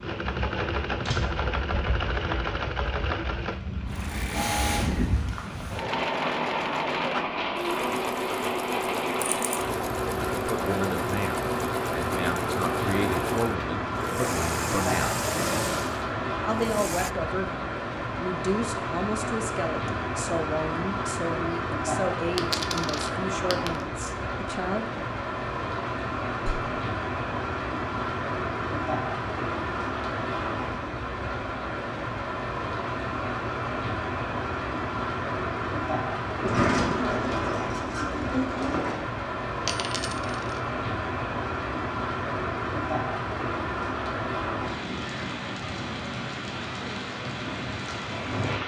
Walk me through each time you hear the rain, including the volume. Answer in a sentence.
The rain can be heard from 0.0 to 48.6 s, at a steady volume.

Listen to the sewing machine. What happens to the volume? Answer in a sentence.
The volume of the sewing machine stays about the same.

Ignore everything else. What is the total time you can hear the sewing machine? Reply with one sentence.
You can hear the sewing machine for 17 seconds altogether.